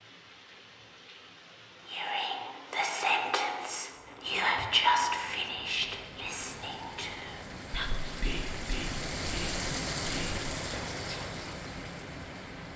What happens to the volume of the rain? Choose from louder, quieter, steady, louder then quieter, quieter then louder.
louder.